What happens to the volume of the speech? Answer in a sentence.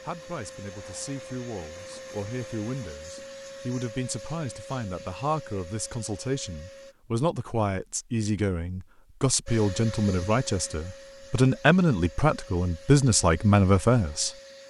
The volume of the speech goes up.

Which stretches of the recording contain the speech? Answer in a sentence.
The speech can be heard from 0.1 to 14.3 s.